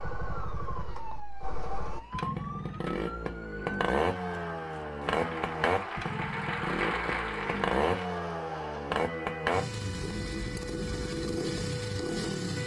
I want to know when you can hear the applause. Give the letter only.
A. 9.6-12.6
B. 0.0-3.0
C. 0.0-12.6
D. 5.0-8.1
D.